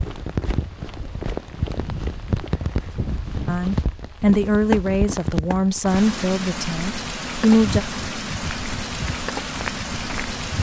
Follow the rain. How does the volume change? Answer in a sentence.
The loudness of the rain stays about the same.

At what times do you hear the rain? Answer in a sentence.
You can hear the rain from 0.0 to 10.5 s.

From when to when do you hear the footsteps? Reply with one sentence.
The footsteps can be heard from 0.0 to 5.7 s and from 7.5 to 10.5 s.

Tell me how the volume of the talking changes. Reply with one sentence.
The loudness of the talking goes down.